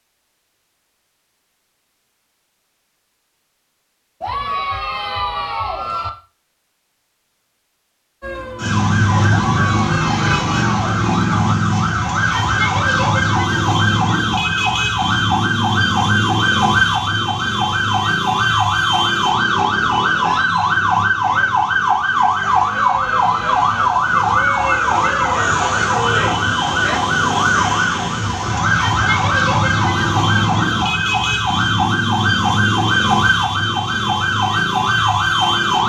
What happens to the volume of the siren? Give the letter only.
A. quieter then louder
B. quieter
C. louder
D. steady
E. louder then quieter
D.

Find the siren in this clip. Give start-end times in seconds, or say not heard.
8.2-35.8.